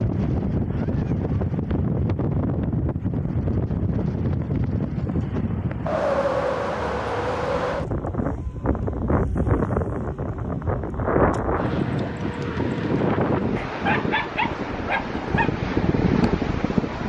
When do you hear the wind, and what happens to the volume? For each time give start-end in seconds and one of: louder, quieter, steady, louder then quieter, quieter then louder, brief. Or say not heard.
0.0-17.0 steady.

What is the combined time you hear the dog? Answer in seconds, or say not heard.
2 s.